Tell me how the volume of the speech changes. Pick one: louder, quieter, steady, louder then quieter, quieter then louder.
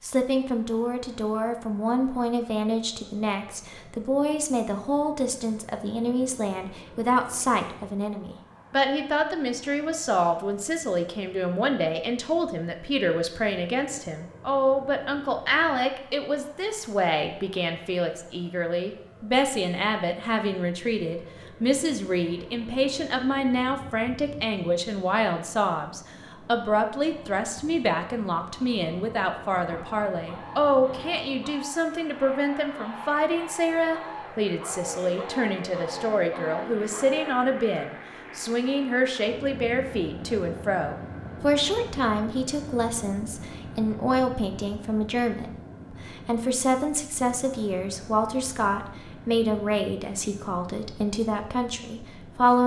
steady.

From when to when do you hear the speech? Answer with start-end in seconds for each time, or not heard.
0.0-52.6.